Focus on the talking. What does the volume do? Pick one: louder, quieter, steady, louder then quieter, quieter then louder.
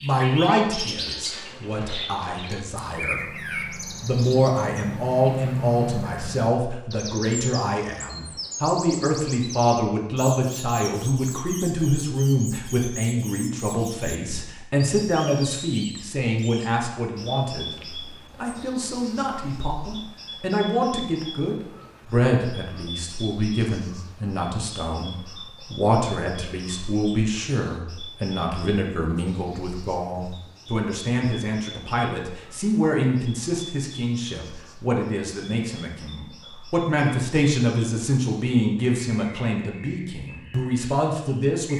steady.